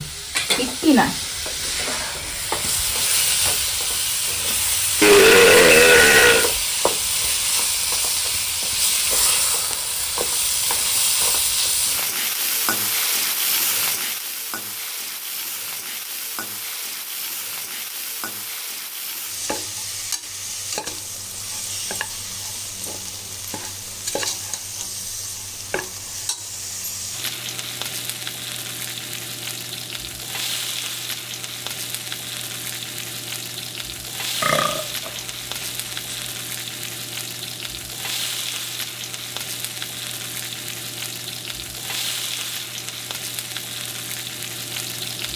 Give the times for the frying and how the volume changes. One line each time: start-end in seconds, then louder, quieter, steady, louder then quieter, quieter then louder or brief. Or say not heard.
0.0-45.3 quieter.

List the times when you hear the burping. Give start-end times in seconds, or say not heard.
5.0-6.5, 34.4-36.1.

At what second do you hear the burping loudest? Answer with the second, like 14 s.
5 s.